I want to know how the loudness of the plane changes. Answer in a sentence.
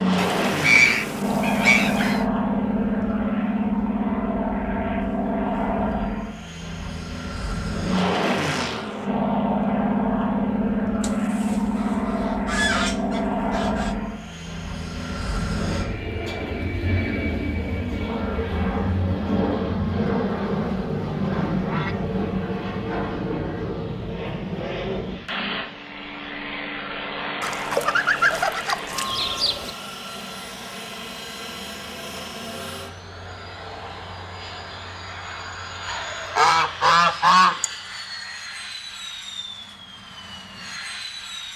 The loudness of the plane goes down.